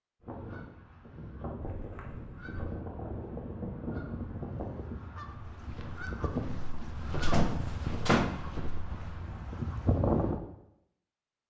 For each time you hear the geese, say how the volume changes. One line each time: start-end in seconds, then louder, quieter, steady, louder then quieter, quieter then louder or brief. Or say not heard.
0.2-10.4 louder.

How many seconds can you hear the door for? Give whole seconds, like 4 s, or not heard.
2 s.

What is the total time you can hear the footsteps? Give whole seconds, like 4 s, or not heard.
4 s.